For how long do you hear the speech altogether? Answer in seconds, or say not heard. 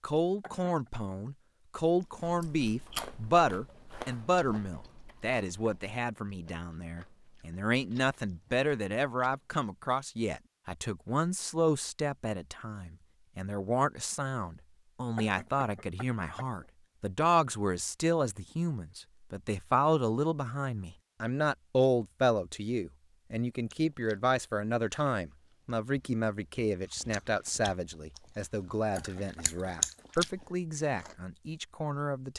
32 s.